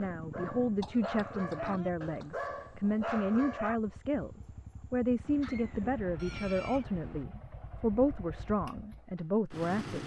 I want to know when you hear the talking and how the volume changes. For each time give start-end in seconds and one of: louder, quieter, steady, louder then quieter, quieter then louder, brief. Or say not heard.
0.0-10.0 steady.